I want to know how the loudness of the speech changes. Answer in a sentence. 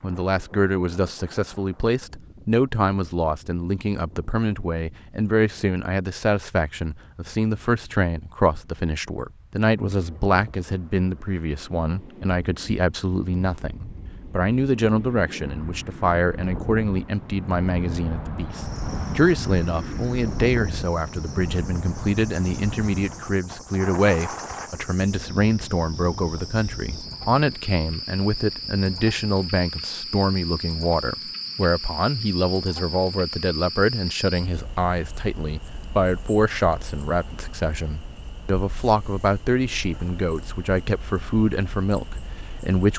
The loudness of the speech stays about the same.